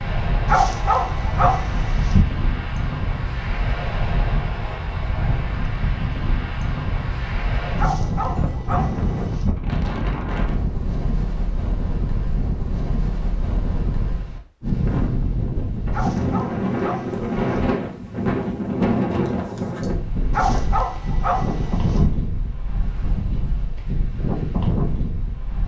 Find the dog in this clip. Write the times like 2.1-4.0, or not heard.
0.5-2.2, 7.8-9.6, 15.9-17.7, 20.3-22.1.